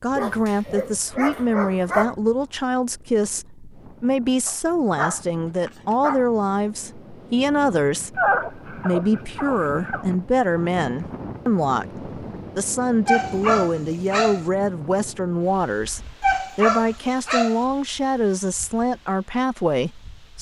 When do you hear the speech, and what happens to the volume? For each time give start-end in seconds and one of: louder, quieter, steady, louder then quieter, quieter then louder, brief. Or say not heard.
0.0-20.3 steady.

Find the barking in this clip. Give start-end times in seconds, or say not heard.
0.1-2.1, 4.5-6.2, 8.2-10.1, 13.1-14.4, 16.2-17.6.